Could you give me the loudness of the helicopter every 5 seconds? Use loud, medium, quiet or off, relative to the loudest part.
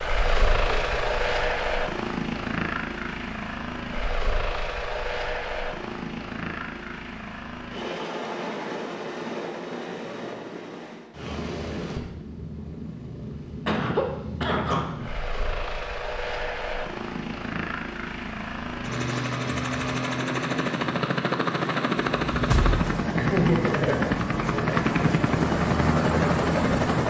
medium, medium, quiet, medium, loud, loud.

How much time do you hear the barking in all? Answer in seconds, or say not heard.
not heard.